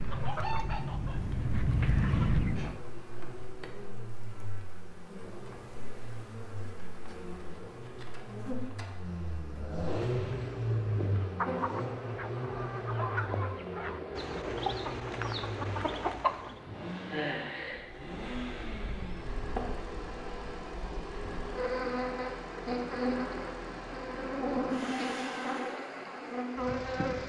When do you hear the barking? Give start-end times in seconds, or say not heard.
not heard.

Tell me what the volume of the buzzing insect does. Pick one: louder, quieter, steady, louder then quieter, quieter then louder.
louder.